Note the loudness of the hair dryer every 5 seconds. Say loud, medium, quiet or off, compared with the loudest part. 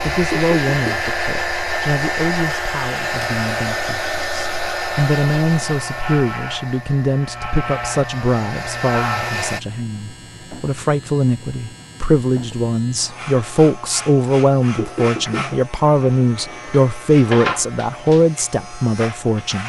loud, medium, off, off.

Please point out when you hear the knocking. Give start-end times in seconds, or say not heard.
0.3-1.1, 14.8-15.6.